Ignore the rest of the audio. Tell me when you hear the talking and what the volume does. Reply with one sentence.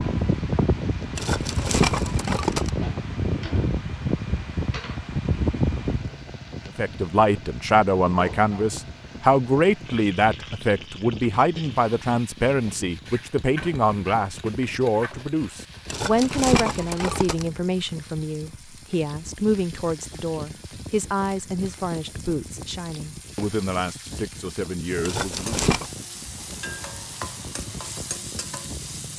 The talking can be heard from 6.7 to 25.6 s, getting quieter.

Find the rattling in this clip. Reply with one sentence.
You can hear the rattling from 1.1 to 2.7 s, from 15.8 to 17.4 s and from 25.0 to 25.9 s.